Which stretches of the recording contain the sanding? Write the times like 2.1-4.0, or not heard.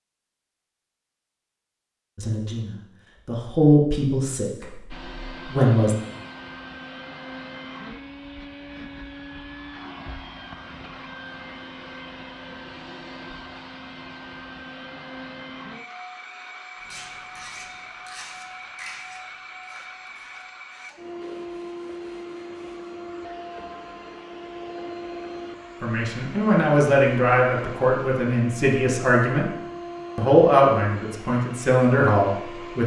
16.8-22.9.